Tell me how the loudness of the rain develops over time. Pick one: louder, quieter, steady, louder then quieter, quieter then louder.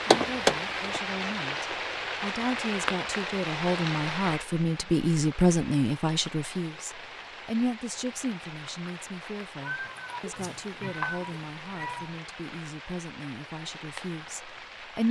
quieter.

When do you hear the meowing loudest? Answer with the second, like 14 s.
11 s.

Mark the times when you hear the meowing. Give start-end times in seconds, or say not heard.
9.6-12.2.